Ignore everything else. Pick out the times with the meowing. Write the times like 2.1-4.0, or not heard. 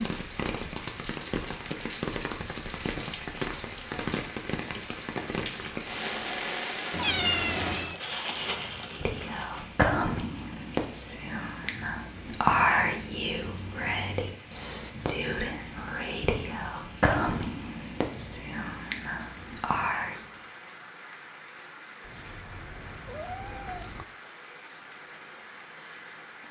6.9-8.0, 22.0-24.1.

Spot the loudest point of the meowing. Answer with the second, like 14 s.
7 s.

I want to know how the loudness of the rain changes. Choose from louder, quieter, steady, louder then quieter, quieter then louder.
quieter.